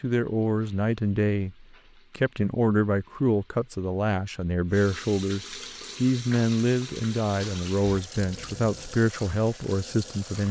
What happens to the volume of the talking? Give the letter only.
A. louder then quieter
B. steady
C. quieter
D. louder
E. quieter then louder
B.